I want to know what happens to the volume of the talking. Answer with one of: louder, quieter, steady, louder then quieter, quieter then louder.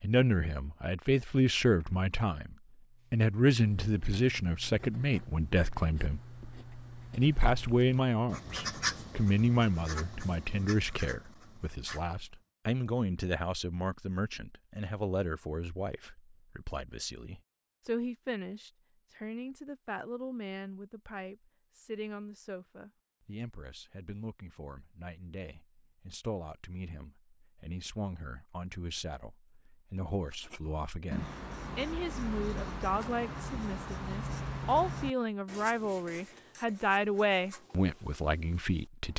quieter then louder.